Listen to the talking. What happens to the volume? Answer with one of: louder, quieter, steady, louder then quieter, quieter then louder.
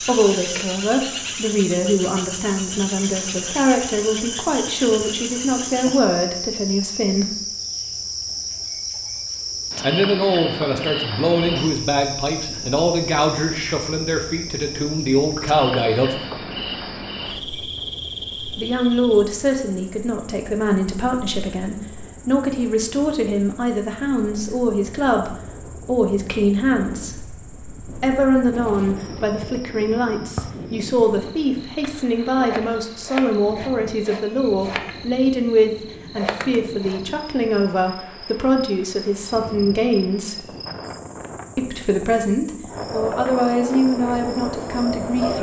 steady.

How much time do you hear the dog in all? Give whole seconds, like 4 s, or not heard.
not heard.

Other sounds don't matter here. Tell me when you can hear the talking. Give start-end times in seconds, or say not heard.
0.0-7.3, 9.8-16.2, 18.6-27.2, 28.0-40.5, 41.5-45.3.